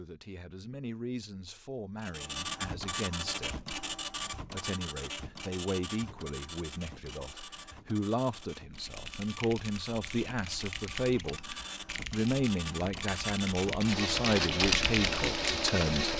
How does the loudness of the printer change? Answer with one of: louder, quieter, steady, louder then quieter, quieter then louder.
quieter then louder.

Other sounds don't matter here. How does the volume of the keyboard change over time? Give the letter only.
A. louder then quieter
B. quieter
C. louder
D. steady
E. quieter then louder
C.